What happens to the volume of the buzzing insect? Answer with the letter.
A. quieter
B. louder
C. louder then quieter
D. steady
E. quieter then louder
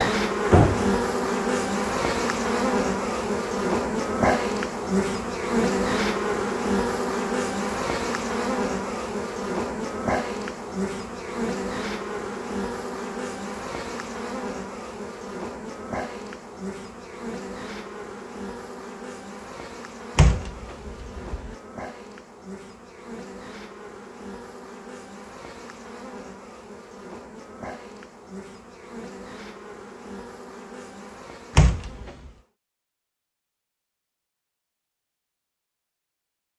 A.